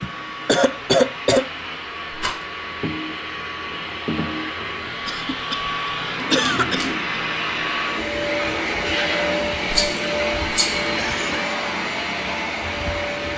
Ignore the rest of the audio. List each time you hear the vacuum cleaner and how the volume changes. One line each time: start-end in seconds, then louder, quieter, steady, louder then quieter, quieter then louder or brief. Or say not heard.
0.0-13.3 louder.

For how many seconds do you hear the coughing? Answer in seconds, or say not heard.
3 s.